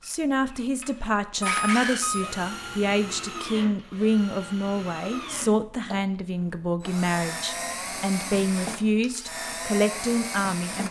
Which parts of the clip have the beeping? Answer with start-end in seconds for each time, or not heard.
1.4-2.2.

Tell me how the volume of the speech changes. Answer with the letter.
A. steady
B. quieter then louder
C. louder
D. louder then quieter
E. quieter
A.